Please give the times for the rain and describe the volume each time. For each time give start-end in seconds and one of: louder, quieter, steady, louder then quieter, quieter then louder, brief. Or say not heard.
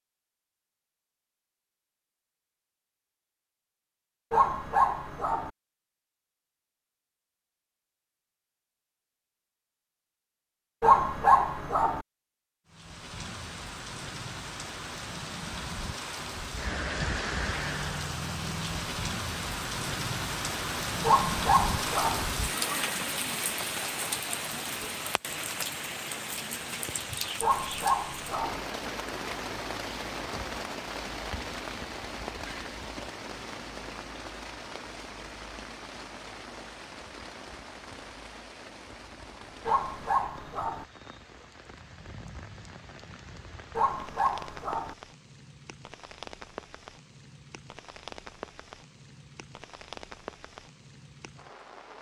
12.7-51.9 quieter.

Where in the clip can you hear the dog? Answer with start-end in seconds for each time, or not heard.
4.3-5.5, 10.8-12.1, 21.0-22.2, 27.4-28.6, 39.6-40.9, 43.8-45.0.